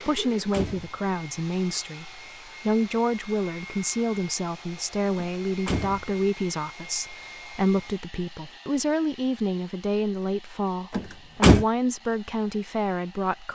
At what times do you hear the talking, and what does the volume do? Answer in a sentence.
You can hear the talking from 0.1 to 13.4 s, at a steady volume.